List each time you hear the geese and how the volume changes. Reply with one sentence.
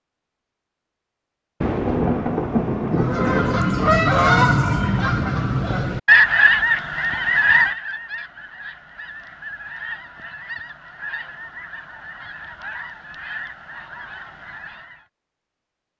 You can hear the geese from 3.0 to 15.1 s, getting quieter.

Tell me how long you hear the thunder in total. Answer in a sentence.
The thunder can be heard for 2 seconds in total.